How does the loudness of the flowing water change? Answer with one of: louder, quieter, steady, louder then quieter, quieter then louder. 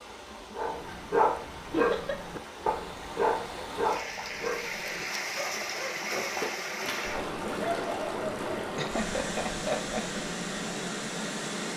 louder.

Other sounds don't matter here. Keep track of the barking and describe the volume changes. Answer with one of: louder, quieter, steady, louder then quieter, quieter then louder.
quieter.